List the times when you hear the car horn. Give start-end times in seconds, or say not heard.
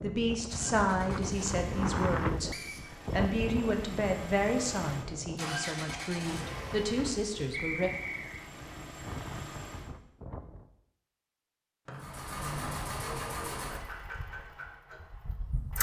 not heard.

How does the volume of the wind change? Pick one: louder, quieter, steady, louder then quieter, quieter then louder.
quieter.